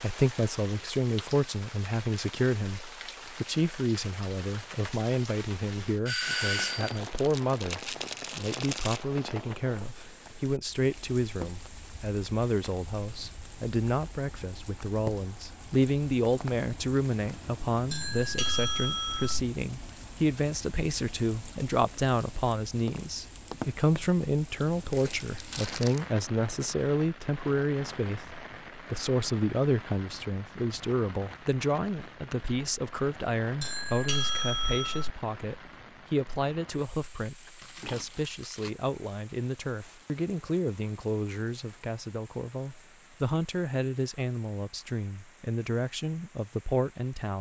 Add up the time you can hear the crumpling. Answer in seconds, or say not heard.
5 s.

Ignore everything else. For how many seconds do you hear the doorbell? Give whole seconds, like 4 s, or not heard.
4 s.